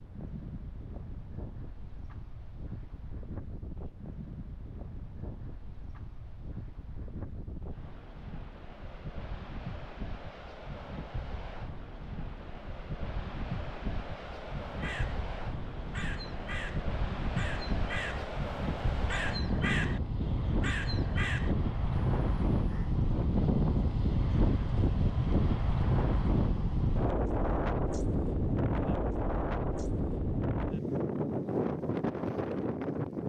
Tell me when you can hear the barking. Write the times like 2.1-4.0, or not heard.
not heard.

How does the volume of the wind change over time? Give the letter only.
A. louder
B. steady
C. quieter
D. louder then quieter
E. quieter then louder
A.